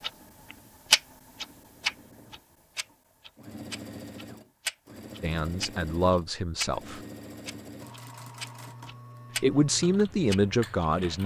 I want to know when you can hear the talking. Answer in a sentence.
You can hear the talking from 5.2 to 7.0 s and from 9.4 to 11.2 s.